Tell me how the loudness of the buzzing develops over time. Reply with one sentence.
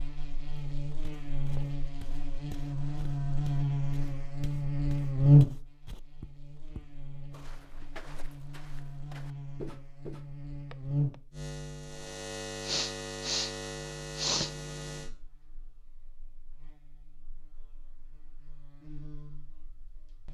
The volume of the buzzing goes up, then down.